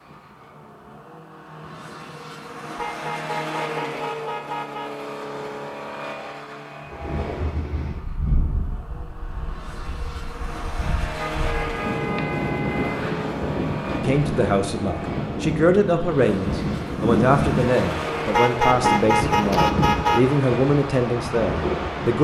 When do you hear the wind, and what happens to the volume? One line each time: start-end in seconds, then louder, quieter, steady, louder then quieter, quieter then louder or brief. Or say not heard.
6.8-22.2 louder.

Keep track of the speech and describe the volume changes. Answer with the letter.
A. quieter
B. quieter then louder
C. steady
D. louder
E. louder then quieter
C.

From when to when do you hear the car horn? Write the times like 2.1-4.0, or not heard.
2.8-4.9, 11.2-13.1, 18.3-20.4.